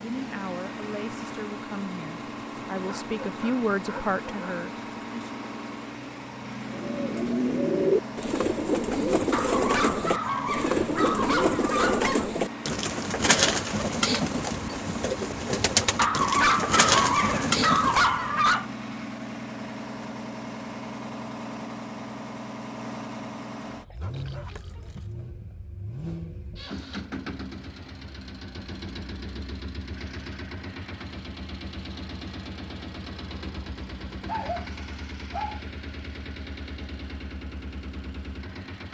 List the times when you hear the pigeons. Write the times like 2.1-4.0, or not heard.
6.7-18.3.